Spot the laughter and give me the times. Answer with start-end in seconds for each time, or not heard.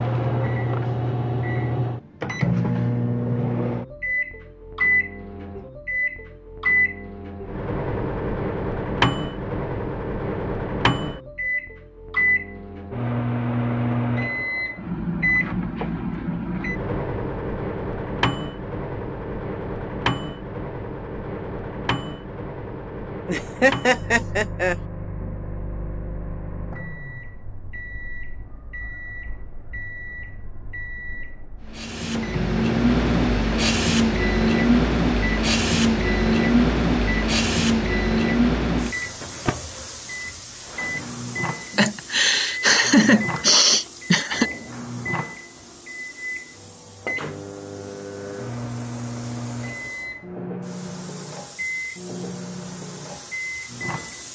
23.2-24.8, 41.8-44.5.